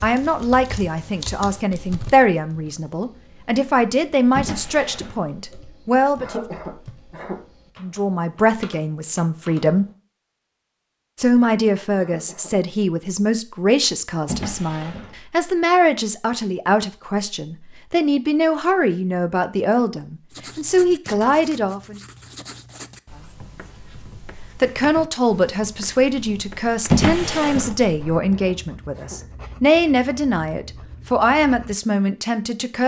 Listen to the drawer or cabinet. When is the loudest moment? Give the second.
27 s.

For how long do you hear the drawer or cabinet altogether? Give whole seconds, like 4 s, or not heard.
3 s.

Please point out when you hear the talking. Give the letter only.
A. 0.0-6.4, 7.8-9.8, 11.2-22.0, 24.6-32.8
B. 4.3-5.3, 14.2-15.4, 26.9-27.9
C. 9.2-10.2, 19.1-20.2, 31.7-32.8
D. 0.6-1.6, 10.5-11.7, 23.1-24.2
A.